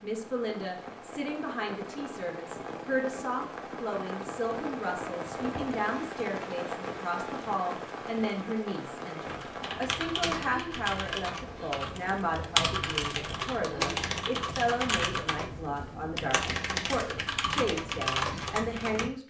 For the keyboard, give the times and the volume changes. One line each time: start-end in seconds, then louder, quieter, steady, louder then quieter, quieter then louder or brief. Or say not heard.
9.2-19.1 steady.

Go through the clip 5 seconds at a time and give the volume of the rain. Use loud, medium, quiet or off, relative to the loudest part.
loud, loud, medium, off.